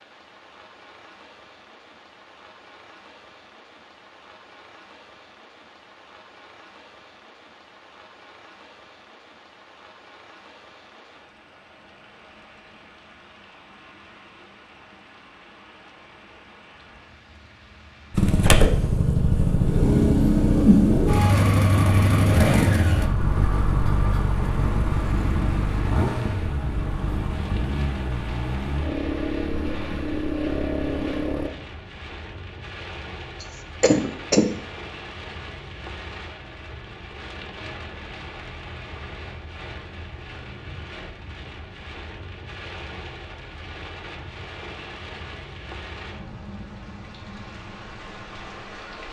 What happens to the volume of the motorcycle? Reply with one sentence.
The loudness of the motorcycle goes down.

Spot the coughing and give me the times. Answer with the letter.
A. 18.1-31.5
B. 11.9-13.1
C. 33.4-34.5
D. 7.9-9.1
C.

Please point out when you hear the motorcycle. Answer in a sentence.
You can hear the motorcycle from 18.1 to 31.5 s.